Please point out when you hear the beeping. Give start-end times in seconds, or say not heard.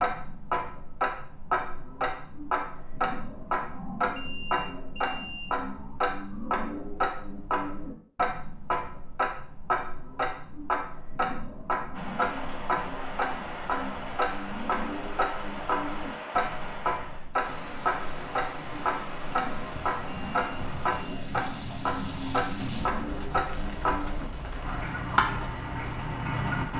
4.2-5.5, 20.1-21.2.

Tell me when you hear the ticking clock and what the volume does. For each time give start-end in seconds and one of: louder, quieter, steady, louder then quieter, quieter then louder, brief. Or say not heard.
0.0-26.7 steady.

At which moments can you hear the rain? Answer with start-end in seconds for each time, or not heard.
11.9-26.7.